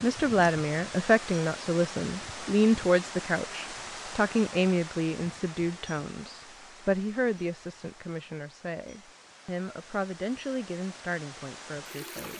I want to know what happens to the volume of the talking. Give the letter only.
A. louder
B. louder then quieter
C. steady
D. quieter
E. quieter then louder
D.